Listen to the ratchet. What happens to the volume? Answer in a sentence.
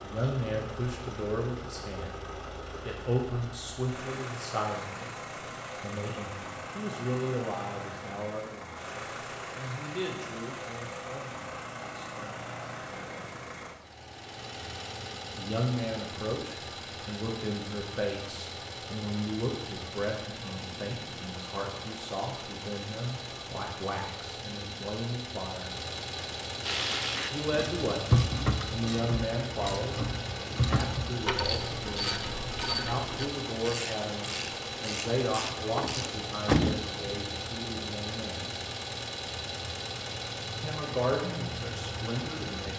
The loudness of the ratchet goes down.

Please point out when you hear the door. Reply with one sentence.
You can hear the door from 35.8 to 37.2 s.